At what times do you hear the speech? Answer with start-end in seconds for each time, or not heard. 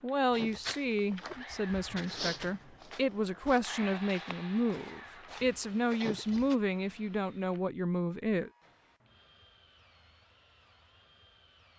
0.0-8.5.